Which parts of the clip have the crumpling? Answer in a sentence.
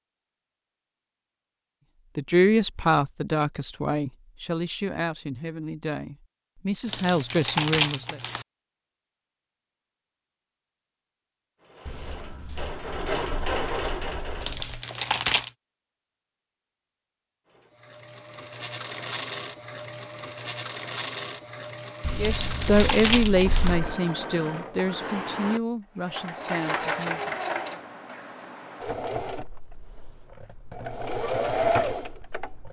The crumpling can be heard from 6.8 to 8.4 s, from 14.4 to 15.5 s and from 22.2 to 23.8 s.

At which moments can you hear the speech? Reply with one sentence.
You can hear the speech from 2.1 to 8.2 s and from 22.1 to 27.4 s.